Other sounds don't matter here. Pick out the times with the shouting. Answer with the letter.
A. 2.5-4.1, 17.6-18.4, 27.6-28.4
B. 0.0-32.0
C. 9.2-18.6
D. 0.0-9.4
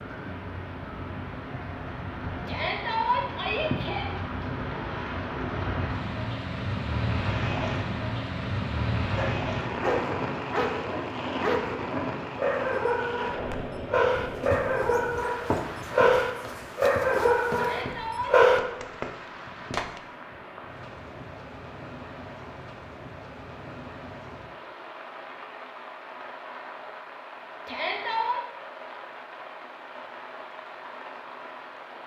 A.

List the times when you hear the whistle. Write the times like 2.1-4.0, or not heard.
not heard.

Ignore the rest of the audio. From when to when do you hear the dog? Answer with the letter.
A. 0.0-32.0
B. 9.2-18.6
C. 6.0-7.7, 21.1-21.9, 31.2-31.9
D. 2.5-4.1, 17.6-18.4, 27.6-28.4
B.